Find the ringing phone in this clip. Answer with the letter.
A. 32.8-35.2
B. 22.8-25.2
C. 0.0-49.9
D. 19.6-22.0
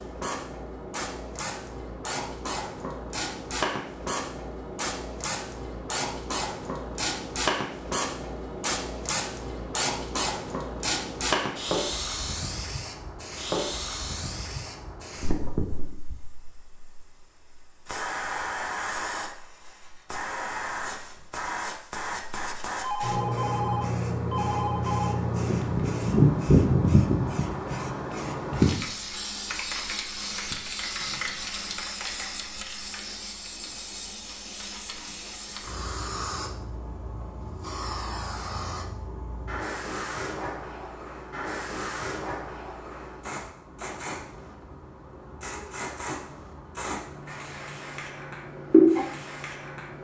B.